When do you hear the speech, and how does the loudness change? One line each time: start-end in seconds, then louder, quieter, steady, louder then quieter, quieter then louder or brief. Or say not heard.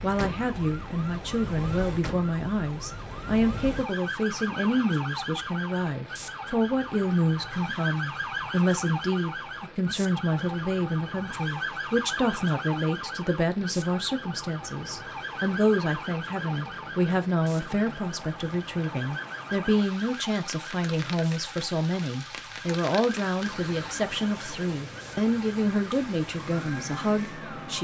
0.0-27.8 steady.